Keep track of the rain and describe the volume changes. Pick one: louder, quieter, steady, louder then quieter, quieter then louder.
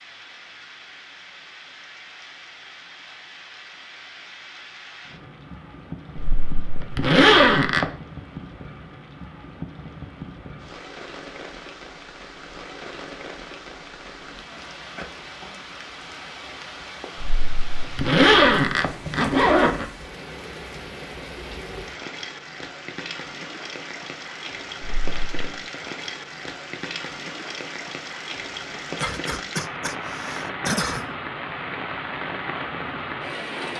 louder.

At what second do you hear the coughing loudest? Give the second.
31 s.